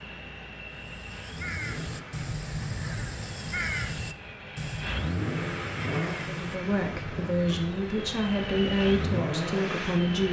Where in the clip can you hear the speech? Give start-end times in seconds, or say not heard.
6.2-10.2.